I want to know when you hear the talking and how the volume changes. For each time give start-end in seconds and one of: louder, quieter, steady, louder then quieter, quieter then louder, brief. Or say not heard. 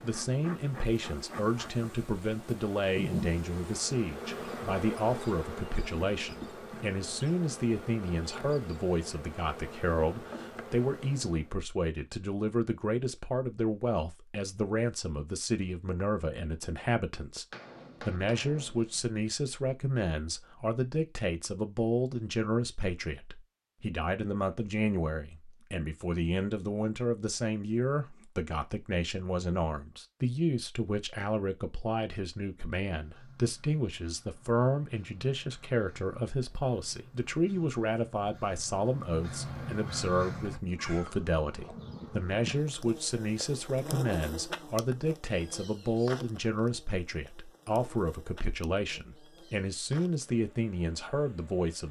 0.0-51.8 steady.